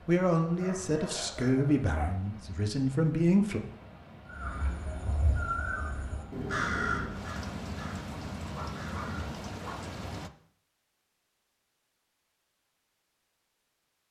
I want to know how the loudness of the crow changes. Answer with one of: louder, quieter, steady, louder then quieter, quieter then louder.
louder then quieter.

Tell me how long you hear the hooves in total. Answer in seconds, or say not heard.
not heard.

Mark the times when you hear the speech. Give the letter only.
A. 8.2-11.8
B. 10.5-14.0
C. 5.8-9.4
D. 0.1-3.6
D.